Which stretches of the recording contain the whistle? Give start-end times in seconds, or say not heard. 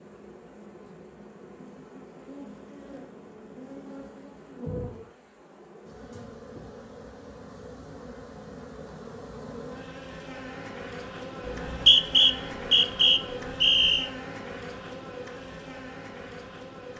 11.4-14.1.